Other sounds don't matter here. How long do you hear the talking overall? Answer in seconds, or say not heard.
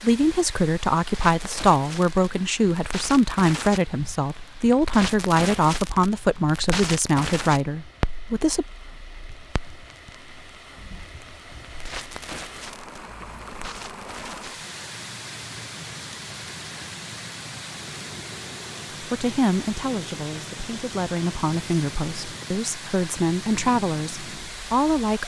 15 s.